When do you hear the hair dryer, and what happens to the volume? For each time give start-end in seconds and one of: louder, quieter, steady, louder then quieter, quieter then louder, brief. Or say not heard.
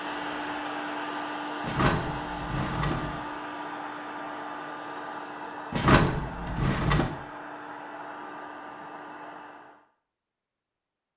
0.0-9.8 quieter.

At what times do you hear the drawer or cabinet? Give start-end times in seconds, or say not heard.
1.6-3.2, 5.7-7.1.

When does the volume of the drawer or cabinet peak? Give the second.
6 s.